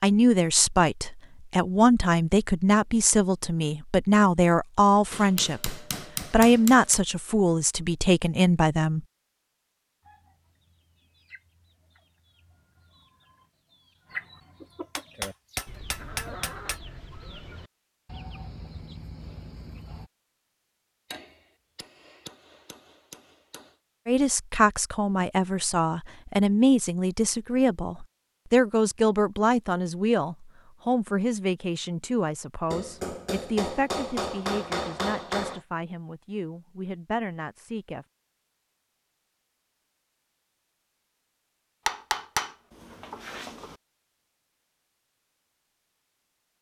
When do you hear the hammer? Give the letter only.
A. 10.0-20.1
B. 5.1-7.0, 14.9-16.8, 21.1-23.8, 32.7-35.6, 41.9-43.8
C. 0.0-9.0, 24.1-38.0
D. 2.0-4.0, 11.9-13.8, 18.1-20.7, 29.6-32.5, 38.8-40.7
B.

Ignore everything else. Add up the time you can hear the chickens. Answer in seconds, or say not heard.
10 s.